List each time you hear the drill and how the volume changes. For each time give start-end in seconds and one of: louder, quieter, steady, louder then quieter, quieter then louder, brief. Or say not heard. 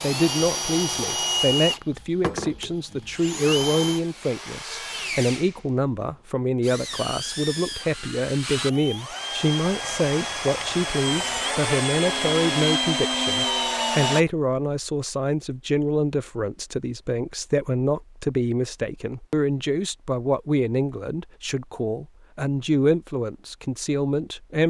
0.0-14.2 quieter then louder.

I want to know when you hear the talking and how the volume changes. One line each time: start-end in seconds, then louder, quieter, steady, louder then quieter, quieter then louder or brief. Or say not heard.
0.0-24.6 steady.